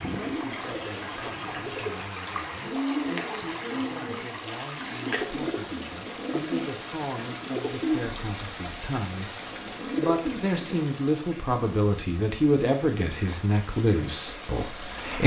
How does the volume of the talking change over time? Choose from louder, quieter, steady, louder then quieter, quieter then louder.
louder.